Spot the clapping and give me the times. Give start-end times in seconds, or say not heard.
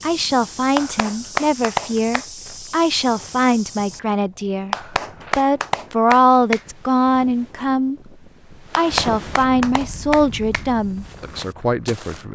0.8-2.2, 4.7-6.7, 8.7-10.7.